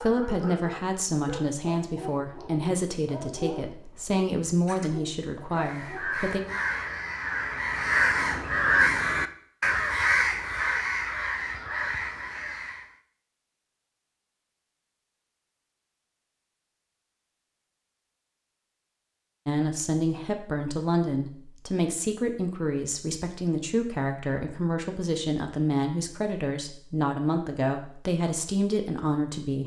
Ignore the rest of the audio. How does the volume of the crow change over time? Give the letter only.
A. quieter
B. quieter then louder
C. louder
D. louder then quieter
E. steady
D.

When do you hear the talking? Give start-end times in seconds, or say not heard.
0.0-6.4, 19.4-29.6.